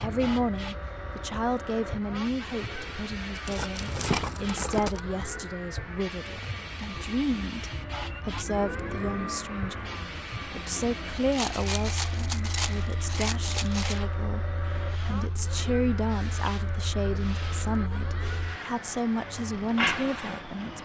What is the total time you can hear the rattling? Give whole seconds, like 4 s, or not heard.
4 s.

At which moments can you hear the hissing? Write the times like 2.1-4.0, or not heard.
0.0-20.8.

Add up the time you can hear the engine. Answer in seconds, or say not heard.
21 s.